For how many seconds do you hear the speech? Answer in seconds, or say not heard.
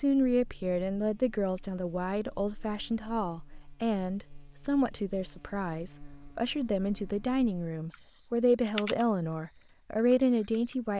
11 s.